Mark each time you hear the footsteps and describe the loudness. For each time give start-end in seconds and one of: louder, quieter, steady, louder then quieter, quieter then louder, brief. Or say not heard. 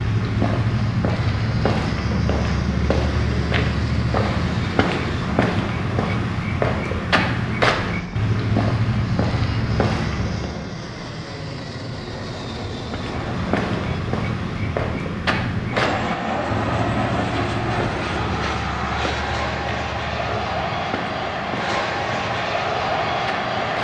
0.0-10.6 steady
12.8-23.7 quieter.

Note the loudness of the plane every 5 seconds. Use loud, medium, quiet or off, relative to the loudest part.
medium, medium, medium, loud, loud.